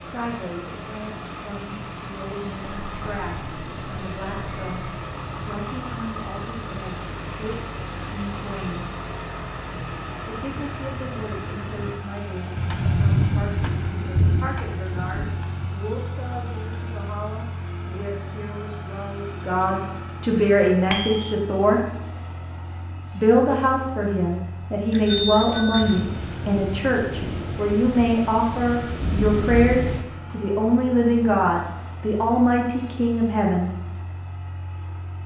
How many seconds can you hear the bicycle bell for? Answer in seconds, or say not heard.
4 s.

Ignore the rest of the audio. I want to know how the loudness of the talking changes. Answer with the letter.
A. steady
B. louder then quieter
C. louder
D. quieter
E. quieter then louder
C.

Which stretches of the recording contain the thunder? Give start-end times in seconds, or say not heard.
12.6-15.7, 25.8-30.1.